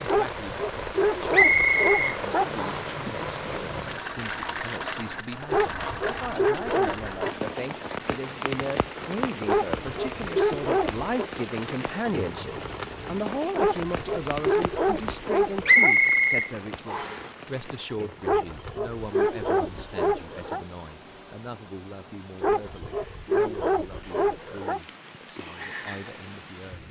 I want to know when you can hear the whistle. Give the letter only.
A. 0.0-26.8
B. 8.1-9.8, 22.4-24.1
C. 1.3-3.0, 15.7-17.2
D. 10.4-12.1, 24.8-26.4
C.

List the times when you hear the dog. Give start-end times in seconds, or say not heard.
0.1-2.5, 5.5-7.3, 9.4-11.3, 13.6-15.9, 18.2-20.6, 22.4-24.8.